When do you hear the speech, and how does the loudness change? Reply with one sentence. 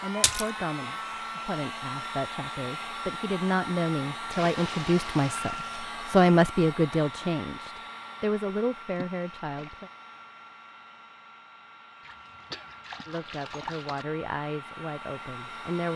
The speech can be heard from 0.0 to 9.9 s, getting louder then quieter; and briefly from 13.1 to 15.9 s.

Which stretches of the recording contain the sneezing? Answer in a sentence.
The sneezing can't be heard in this clip.